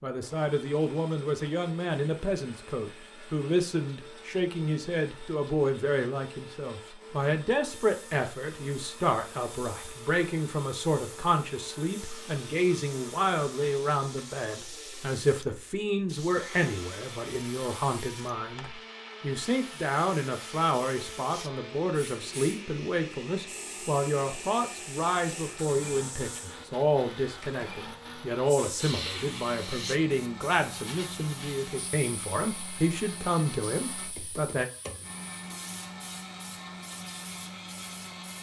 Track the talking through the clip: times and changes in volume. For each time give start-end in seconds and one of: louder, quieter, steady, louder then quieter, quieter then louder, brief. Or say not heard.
0.0-34.6 steady.